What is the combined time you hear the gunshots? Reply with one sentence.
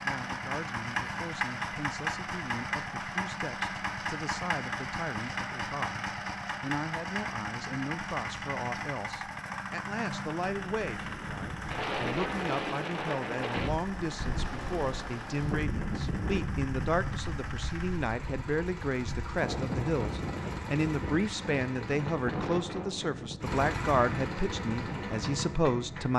The gunshots can be heard for 2 seconds in total.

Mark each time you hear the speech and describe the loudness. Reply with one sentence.
The speech can be heard from 0.0 to 26.1 s, getting louder.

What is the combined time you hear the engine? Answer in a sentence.
The engine can be heard for 26 seconds in total.